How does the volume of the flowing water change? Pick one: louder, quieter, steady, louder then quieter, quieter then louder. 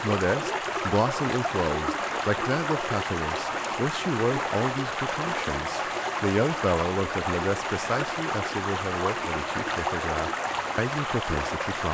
steady.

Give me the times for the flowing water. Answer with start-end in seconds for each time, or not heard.
0.0-11.8.